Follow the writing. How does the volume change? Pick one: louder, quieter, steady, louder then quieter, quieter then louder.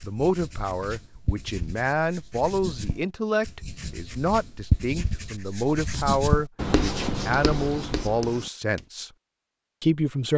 louder.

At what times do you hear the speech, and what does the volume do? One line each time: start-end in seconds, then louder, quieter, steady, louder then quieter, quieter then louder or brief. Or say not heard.
0.0-9.1 steady
9.8-10.3 brief.